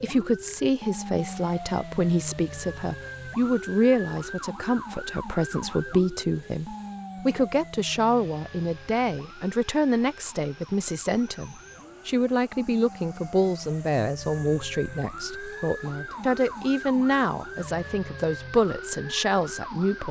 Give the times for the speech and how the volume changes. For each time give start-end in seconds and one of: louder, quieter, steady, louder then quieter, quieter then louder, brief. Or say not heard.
0.0-20.0 steady.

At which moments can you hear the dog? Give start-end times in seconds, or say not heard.
not heard.